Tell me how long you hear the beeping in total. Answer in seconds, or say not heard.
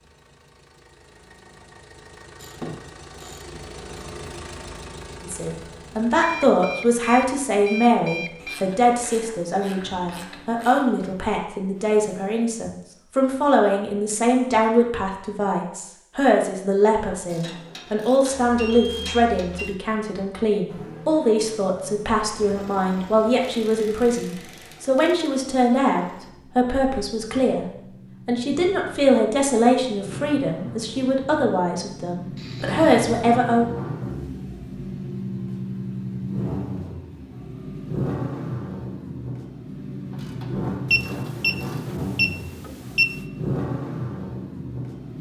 6 s.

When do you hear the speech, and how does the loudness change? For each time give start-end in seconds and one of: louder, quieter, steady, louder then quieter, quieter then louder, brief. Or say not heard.
5.2-33.6 steady.